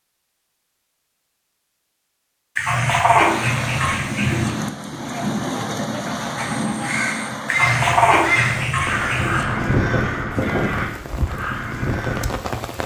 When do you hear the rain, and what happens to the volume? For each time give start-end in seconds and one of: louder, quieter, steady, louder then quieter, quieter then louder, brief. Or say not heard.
3.2-12.8 quieter.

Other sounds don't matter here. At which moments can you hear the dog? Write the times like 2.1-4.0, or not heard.
2.5-4.5, 7.5-9.4.